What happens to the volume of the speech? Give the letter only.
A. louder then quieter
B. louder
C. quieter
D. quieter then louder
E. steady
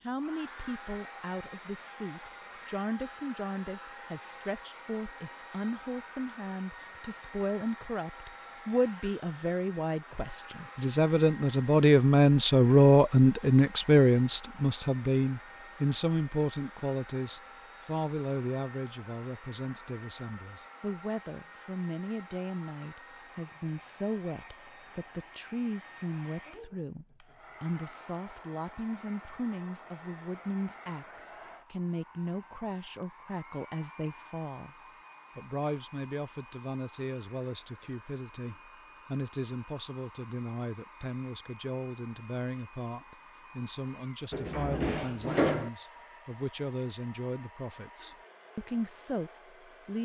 A.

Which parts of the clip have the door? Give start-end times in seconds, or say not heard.
44.3-45.7.